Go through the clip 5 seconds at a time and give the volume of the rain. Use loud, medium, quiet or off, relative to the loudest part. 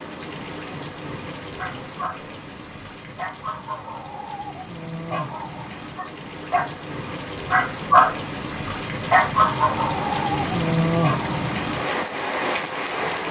quiet, medium, loud.